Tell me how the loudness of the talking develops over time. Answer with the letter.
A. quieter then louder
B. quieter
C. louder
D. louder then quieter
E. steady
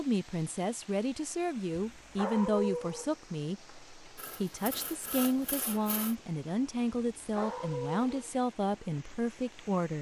E.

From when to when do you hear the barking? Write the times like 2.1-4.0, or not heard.
1.9-3.1, 7.0-8.3.